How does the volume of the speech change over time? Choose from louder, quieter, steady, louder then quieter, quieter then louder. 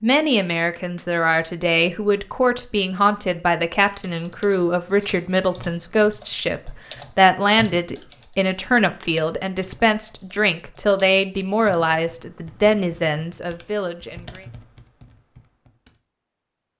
steady.